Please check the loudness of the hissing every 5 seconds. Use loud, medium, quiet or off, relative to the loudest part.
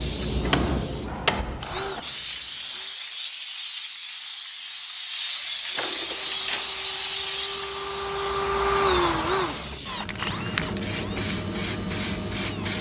medium, loud, loud.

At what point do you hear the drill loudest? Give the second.
9 s.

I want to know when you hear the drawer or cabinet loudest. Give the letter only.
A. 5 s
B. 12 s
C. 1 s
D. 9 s
C.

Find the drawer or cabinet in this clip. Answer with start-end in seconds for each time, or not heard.
0.4-2.0, 5.8-6.8, 10.1-10.8.